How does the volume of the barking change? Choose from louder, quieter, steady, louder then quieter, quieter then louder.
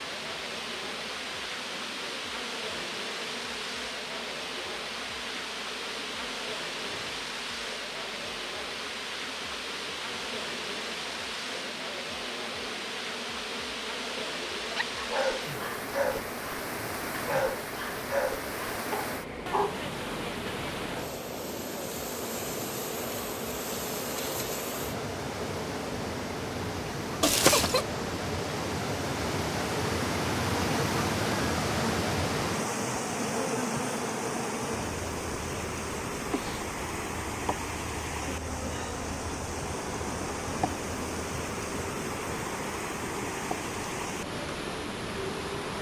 quieter.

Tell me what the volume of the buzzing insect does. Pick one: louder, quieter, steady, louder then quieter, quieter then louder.
louder.